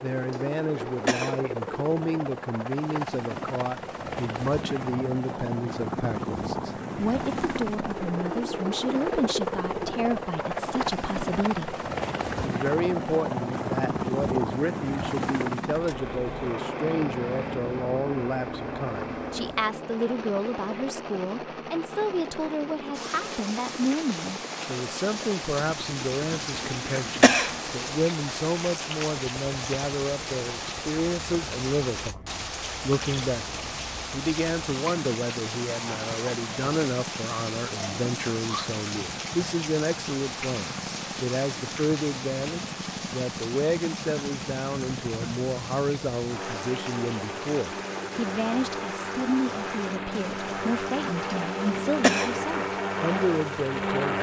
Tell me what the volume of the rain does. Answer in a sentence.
The loudness of the rain goes down.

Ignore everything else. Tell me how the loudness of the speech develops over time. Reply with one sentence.
The loudness of the speech stays about the same.